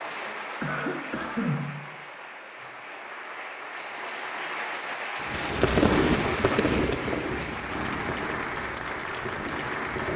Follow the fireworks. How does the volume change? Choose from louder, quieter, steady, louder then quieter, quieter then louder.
quieter.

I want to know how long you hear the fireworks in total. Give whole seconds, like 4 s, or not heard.
5 s.